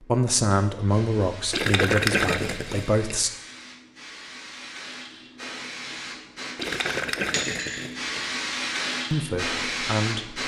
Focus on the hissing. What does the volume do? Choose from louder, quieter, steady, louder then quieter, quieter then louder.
louder.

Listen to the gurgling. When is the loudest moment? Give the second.
2 s.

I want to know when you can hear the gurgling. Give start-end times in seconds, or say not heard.
1.5-3.2, 6.5-8.2.